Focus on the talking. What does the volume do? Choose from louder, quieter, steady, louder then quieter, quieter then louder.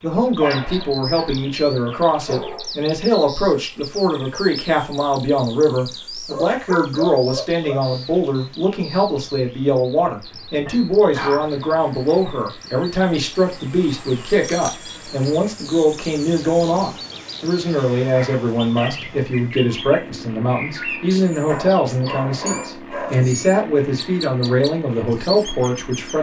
steady.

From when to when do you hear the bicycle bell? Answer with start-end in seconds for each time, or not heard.
14.4-15.1.